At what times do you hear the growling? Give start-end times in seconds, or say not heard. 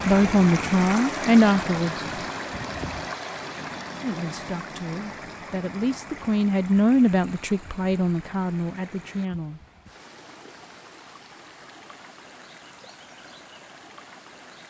not heard.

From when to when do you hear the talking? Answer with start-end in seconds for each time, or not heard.
0.1-2.0, 4.0-9.6.